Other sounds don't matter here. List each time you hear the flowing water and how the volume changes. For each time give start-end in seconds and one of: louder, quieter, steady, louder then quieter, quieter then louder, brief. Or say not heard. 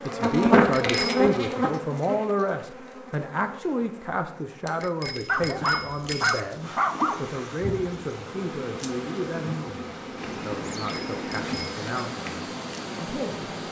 6.5-13.6 louder.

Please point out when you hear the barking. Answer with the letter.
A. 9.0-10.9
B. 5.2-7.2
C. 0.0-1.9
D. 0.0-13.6
B.